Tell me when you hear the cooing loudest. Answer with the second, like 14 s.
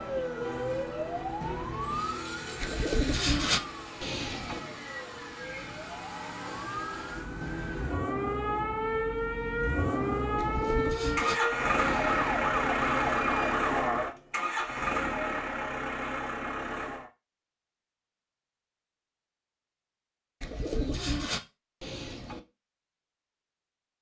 3 s.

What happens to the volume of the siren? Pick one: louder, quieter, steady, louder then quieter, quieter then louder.
quieter then louder.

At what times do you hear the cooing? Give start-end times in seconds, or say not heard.
2.6-4.6, 10.3-12.2, 20.4-22.4.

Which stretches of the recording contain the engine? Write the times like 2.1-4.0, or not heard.
1.8-17.1.